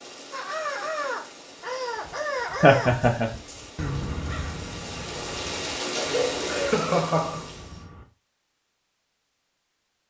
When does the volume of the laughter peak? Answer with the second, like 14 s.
3 s.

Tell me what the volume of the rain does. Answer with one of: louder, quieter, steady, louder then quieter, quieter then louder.
louder.